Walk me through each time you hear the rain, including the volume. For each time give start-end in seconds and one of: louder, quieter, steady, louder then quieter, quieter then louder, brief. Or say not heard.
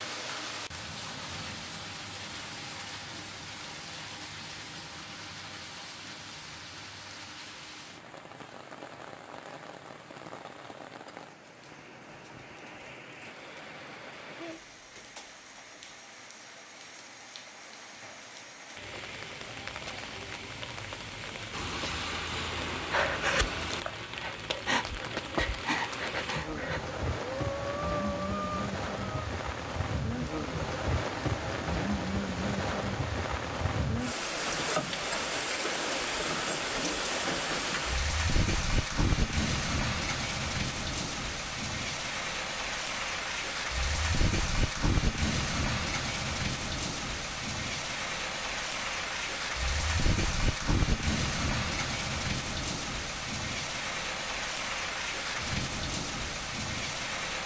0.0-57.4 louder.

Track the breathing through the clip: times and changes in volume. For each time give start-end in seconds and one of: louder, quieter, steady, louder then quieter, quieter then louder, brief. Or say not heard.
22.9-29.3 steady.